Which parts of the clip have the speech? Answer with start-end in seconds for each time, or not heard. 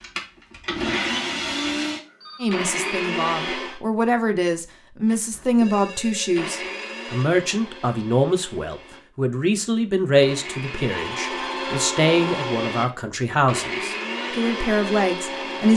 2.4-15.7.